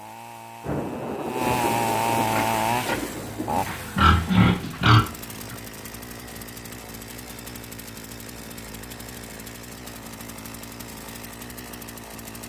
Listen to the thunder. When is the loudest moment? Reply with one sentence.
The volume of the thunder peaks at 2 seconds.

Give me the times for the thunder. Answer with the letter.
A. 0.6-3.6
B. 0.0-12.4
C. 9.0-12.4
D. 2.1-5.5
A.